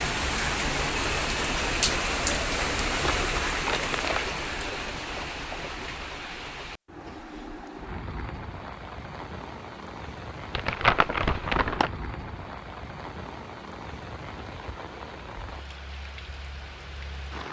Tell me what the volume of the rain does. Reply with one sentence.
The volume of the rain goes down.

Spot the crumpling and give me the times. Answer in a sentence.
You can hear the crumpling from 2.9 to 4.2 s and from 10.6 to 11.9 s.